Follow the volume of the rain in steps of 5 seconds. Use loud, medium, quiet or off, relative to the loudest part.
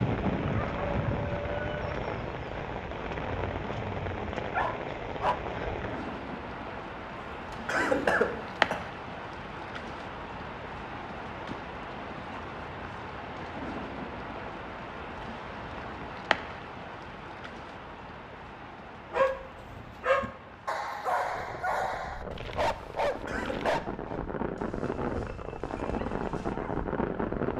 loud, loud, medium, medium, medium, loud.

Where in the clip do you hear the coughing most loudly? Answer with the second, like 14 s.
8 s.